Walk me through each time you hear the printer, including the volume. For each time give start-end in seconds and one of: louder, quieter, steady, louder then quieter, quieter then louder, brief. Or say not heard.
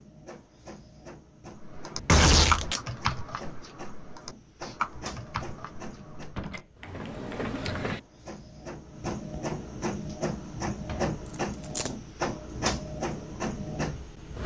0.0-14.4 louder.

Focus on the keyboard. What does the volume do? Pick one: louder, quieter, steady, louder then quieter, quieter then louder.
quieter.